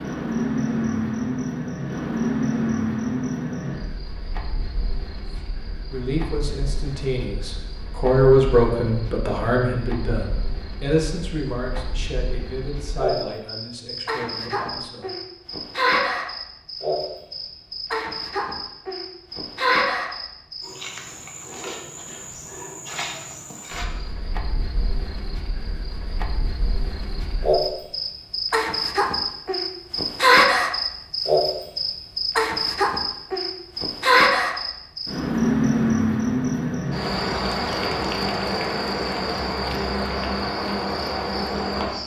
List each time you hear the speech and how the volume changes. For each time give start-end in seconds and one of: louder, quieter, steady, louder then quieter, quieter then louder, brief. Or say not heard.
5.9-15.1 louder then quieter.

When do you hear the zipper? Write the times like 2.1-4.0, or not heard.
not heard.